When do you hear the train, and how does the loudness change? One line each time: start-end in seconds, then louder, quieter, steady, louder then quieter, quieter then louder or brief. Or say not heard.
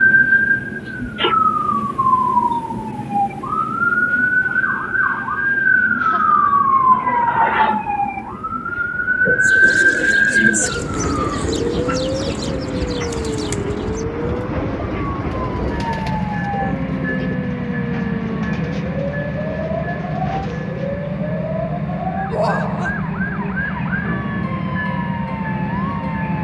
0.0-26.3 louder.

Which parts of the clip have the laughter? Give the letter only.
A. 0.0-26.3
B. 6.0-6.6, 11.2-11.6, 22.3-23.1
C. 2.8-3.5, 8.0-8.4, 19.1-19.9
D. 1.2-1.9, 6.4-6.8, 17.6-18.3
B.